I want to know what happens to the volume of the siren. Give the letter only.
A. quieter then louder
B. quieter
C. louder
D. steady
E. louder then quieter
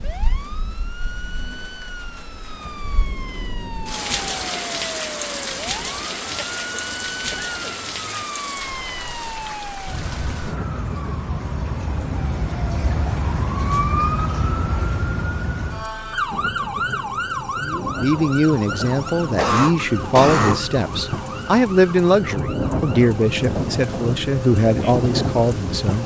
E.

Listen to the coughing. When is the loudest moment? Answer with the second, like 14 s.
20 s.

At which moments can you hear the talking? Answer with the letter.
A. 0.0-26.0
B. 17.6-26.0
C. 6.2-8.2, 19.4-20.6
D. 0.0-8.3
B.